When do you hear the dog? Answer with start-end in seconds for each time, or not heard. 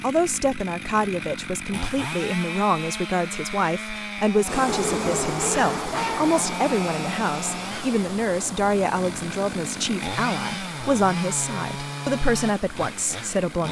4.7-6.3.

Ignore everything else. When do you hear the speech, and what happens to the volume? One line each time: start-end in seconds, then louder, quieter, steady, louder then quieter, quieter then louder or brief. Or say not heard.
0.0-13.6 steady.